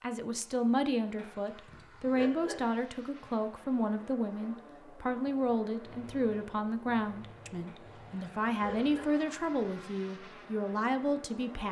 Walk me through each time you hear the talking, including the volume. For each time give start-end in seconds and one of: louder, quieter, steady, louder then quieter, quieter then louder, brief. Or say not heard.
0.0-11.6 steady.